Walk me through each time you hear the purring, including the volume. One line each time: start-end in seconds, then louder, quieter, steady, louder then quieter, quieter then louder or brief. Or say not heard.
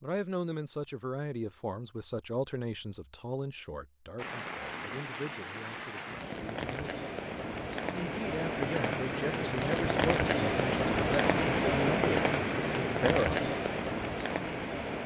not heard.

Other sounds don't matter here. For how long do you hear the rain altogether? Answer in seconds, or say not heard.
11 s.